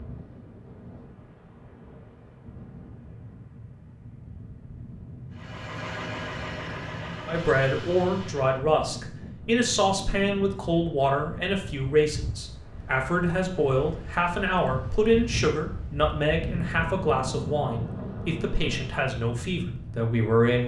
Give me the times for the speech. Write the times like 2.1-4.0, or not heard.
7.2-20.6.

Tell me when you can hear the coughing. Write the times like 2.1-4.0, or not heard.
not heard.